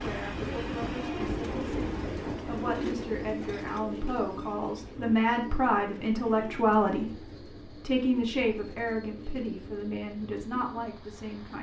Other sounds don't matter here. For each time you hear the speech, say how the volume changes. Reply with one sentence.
The speech can be heard from 0.0 to 11.5 s, getting louder then quieter.